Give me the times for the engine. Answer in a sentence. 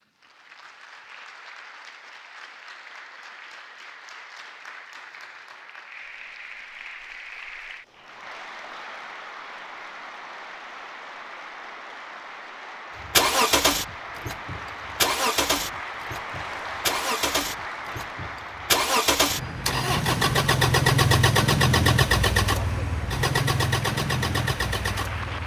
You can hear the engine from 13.0 to 25.4 s.